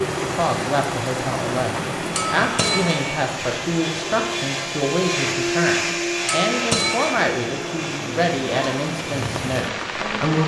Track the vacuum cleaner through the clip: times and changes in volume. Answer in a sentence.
The vacuum cleaner can be heard from 0.0 to 10.4 s, getting louder then quieter.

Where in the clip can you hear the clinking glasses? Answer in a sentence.
The clinking glasses can be heard from 2.1 to 3.2 s and from 6.2 to 7.3 s.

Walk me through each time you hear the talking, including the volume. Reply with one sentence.
The talking can be heard from 0.0 to 10.4 s, at a steady volume.